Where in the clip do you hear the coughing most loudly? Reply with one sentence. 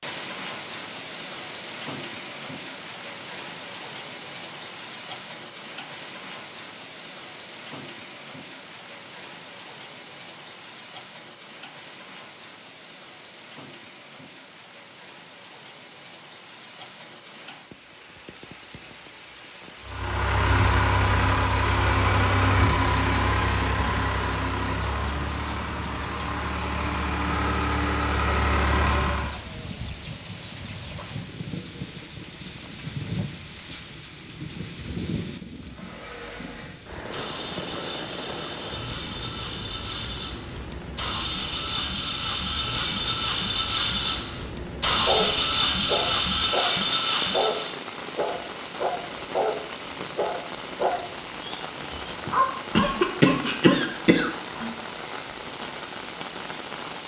The loudest moment of the coughing is at 53 seconds.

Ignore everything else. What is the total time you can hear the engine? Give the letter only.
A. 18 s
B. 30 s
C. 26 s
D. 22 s
D.